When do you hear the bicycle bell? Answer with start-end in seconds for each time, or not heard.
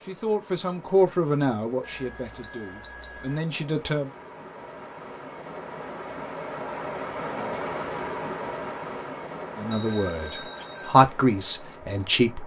1.8-3.4, 9.7-11.0.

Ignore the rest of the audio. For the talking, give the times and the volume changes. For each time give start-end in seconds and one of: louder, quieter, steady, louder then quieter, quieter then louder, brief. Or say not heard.
0.0-4.1 quieter then louder
9.6-12.4 brief.